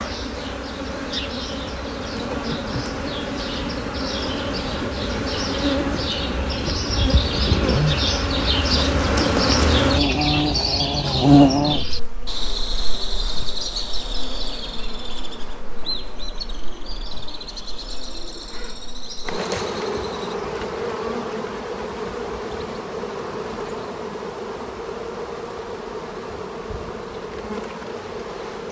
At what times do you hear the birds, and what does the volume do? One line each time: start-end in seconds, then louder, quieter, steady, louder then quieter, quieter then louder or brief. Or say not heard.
0.0-20.4 louder then quieter.